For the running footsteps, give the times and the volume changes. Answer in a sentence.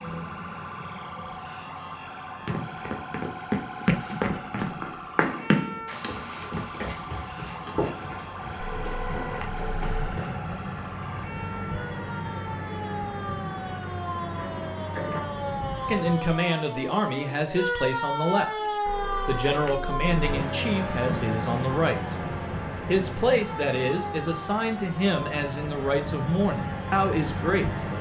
The running footsteps can be heard from 2.5 to 10.7 s, getting quieter.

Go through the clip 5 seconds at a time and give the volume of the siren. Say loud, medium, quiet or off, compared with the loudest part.
medium, medium, medium, loud, medium, medium.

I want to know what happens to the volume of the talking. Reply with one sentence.
The volume of the talking stays about the same.